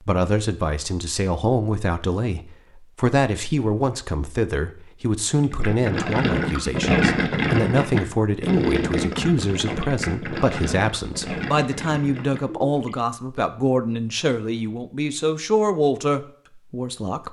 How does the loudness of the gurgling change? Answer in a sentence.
The volume of the gurgling goes down.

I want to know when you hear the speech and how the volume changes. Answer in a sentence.
You can hear the speech from 0.0 to 17.2 s, at a steady volume.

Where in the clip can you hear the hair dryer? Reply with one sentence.
The hair dryer can't be heard in this clip.